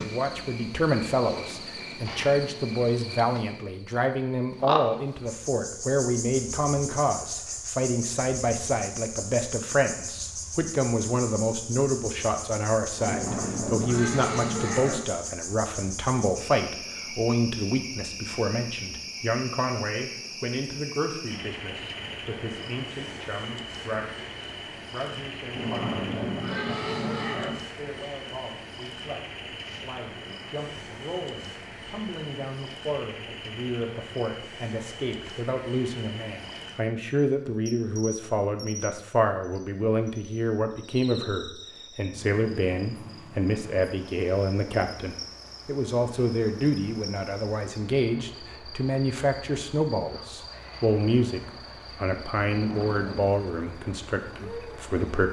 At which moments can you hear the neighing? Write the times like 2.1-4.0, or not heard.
12.9-15.0, 25.5-27.6, 52.4-53.3.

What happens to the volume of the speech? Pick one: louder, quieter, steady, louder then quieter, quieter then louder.
quieter then louder.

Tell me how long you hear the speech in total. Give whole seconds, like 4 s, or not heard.
55 s.